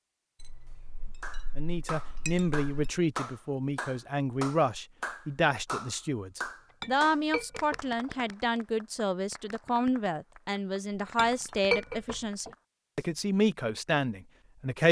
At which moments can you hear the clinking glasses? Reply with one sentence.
The clinking glasses can be heard from 0.4 to 3.0 s, from 6.8 to 8.2 s and from 10.9 to 12.5 s.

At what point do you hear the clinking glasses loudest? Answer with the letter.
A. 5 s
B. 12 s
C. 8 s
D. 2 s
B.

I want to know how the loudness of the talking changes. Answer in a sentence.
The loudness of the talking stays about the same.